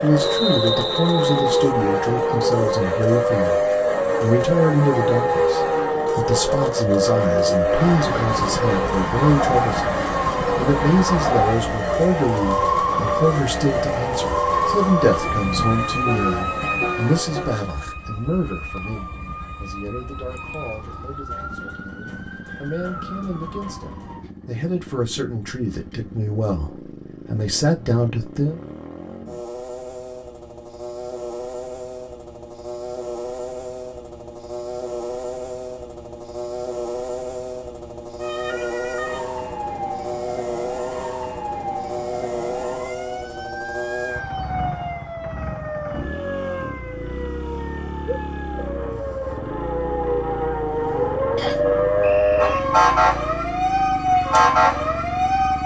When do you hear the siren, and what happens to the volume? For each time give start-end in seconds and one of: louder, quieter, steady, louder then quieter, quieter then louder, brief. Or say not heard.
0.0-24.2 quieter
38.2-55.6 louder.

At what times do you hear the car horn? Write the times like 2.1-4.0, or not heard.
16.1-17.5.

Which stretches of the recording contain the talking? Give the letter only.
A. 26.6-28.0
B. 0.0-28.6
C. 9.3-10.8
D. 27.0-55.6
B.